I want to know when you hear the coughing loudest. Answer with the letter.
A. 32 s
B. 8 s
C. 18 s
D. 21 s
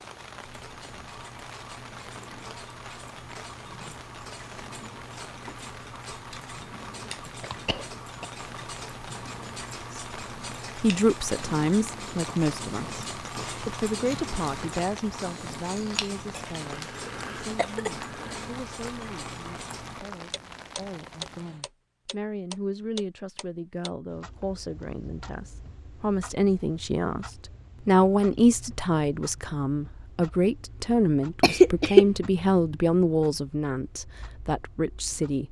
A.